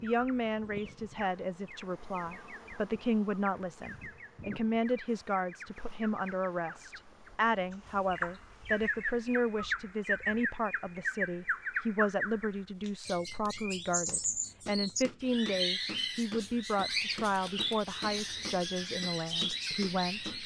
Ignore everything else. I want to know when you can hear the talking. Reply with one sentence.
The talking can be heard from 0.0 to 20.4 s.